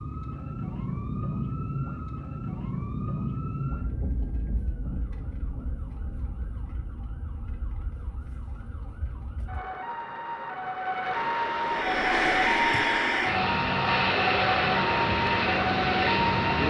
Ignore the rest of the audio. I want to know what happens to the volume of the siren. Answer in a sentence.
The loudness of the siren goes down, then up.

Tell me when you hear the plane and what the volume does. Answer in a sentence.
You can hear the plane from 11.6 to 16.6 s, at a steady volume.